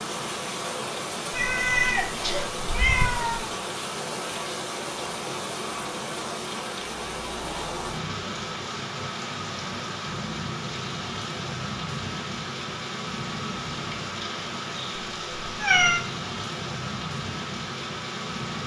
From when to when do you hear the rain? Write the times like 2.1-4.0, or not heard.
0.0-18.6.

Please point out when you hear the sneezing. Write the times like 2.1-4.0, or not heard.
1.9-2.5.